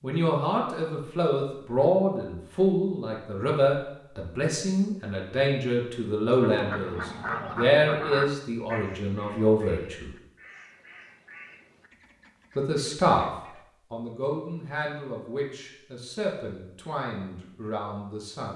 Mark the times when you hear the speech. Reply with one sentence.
The speech can be heard from 0.0 to 10.1 s, from 12.6 to 13.2 s and from 13.9 to 18.5 s.